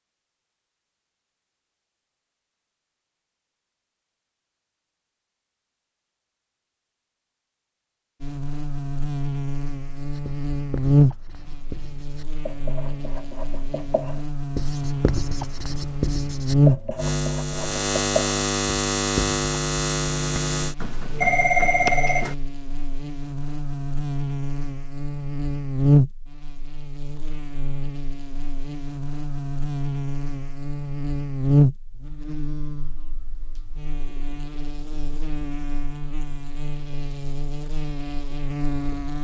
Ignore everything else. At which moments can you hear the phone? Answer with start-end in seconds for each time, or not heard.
20.4-22.4.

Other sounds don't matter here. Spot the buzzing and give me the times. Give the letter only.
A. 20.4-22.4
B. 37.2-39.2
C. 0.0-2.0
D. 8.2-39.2
D.